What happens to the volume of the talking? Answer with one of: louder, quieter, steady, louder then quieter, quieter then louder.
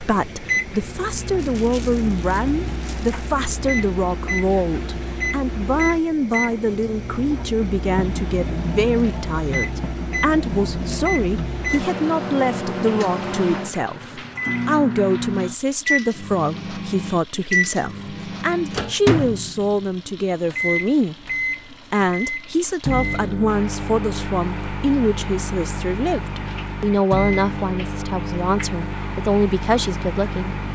steady.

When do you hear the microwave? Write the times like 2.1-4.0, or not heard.
0.0-30.7.